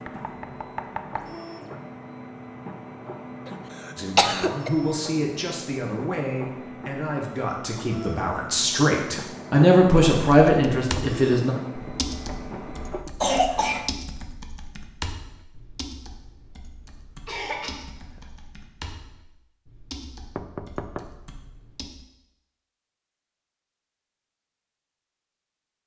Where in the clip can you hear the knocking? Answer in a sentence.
The knocking can be heard from 0.1 to 1.4 s, from 11.8 to 13.1 s and from 20.4 to 21.1 s.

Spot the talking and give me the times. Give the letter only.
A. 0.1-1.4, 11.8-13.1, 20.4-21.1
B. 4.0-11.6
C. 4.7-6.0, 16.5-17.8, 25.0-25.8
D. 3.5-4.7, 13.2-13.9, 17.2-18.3
B.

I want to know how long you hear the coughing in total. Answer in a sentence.
You can hear the coughing for 3 seconds altogether.